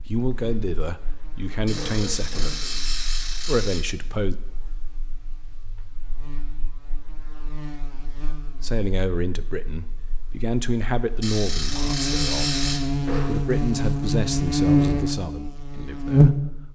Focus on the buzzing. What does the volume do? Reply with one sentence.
The loudness of the buzzing goes down, then up.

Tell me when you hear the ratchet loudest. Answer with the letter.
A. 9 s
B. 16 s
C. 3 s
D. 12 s
D.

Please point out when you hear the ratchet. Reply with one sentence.
You can hear the ratchet from 1.6 to 3.9 s and from 11.2 to 12.8 s.